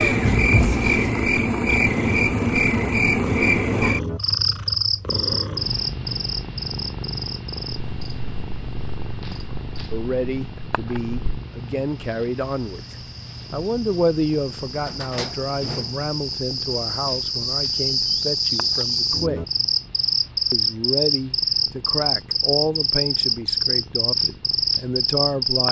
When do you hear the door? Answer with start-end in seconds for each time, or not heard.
0.2-0.8, 14.8-16.6.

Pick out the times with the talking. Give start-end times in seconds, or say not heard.
9.9-19.4, 20.5-25.6.